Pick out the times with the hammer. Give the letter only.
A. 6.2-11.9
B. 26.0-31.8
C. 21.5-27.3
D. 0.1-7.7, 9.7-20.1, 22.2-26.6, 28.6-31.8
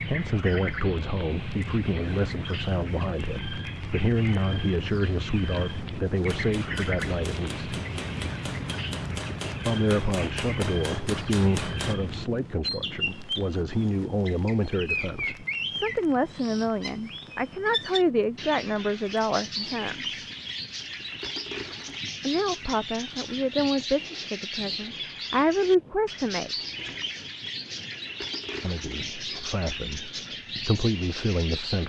A.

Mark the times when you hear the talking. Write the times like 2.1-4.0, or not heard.
0.1-7.7, 9.7-20.1, 22.2-26.6, 28.6-31.8.